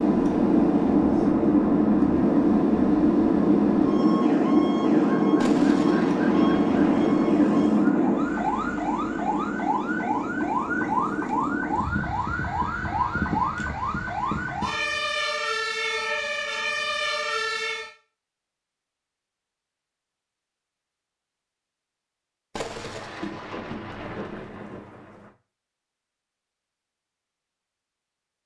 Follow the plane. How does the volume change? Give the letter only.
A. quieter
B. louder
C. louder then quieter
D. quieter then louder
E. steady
A.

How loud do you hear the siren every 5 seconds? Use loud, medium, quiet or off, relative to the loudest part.
medium, medium, loud, loud, off, off.